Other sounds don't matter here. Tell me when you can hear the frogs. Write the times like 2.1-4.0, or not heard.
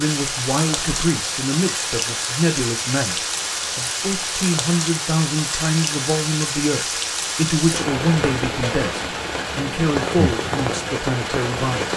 not heard.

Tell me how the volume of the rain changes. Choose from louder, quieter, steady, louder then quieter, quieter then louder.
steady.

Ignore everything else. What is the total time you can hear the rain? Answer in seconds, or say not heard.
12 s.